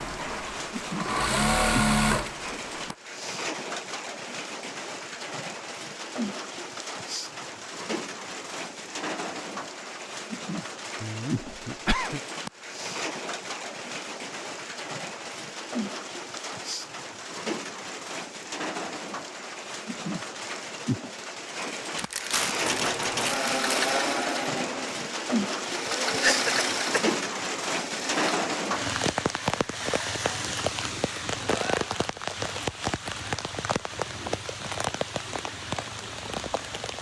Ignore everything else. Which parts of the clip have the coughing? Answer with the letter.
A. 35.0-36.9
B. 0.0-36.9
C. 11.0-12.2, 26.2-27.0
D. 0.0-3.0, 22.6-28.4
C.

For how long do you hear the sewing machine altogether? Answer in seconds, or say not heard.
9 s.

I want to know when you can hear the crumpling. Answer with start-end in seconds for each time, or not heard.
21.9-23.9.